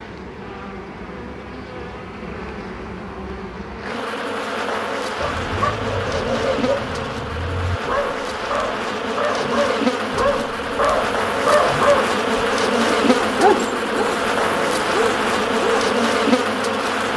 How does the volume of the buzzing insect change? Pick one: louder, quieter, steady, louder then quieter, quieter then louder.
louder.